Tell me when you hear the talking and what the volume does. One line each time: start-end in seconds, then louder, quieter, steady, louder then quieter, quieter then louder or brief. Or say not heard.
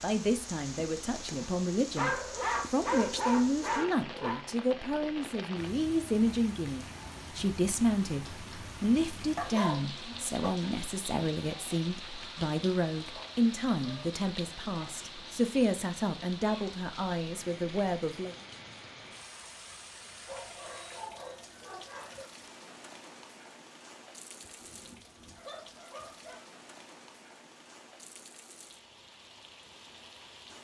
0.0-18.4 steady.